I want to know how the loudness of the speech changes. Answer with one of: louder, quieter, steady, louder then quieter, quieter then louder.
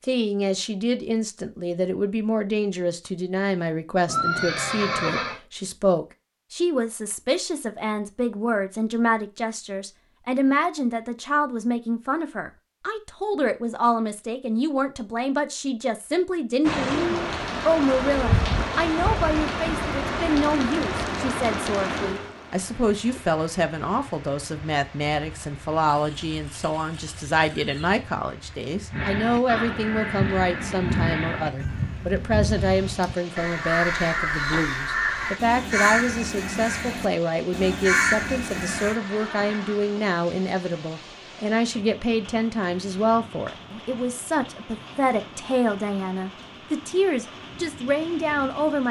steady.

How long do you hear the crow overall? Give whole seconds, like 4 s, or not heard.
10 s.